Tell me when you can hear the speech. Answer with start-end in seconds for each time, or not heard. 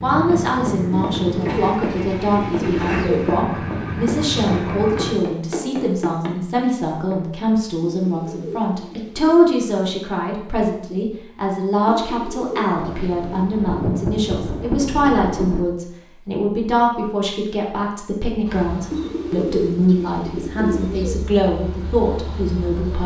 0.0-23.0.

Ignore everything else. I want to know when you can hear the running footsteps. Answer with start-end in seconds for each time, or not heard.
0.1-7.2.